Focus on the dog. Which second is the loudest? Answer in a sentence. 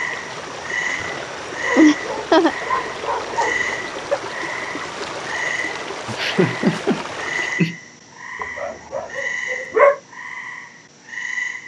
The loudest moment of the dog is at 10 seconds.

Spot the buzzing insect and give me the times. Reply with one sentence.
You can't hear the buzzing insect here.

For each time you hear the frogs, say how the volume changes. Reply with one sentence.
You can hear the frogs from 0.0 to 11.6 s, at a steady volume.